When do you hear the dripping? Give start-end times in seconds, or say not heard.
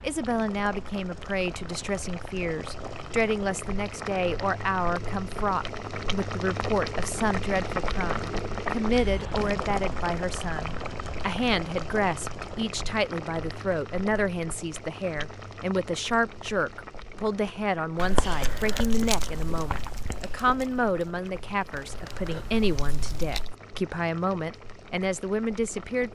not heard.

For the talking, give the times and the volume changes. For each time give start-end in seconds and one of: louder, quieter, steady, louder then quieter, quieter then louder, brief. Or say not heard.
0.0-26.0 steady.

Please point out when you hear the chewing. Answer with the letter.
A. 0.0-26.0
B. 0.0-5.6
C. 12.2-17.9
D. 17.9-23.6
D.